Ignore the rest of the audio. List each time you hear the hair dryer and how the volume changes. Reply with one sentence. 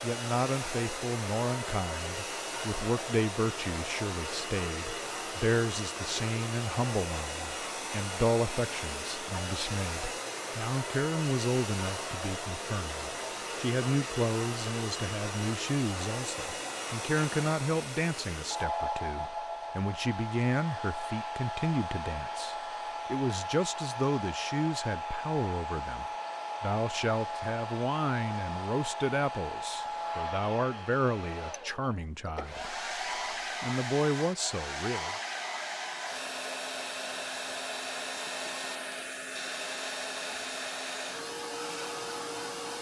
The hair dryer can be heard from 0.0 to 42.7 s, at a steady volume.